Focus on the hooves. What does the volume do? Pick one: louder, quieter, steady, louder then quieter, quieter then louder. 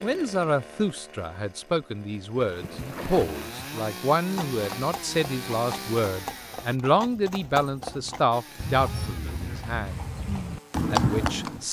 louder.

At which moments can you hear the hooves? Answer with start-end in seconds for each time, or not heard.
2.4-11.6.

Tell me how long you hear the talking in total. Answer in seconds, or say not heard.
11 s.